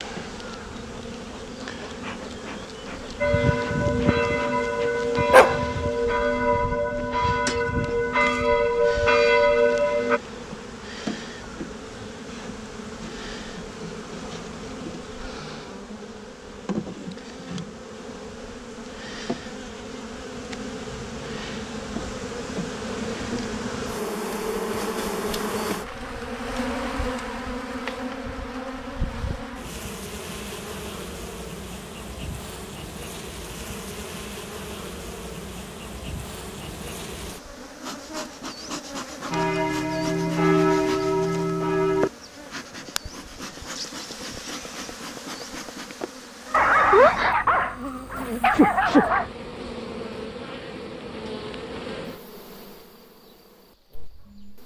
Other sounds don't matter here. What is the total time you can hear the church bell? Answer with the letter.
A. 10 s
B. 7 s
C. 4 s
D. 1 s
A.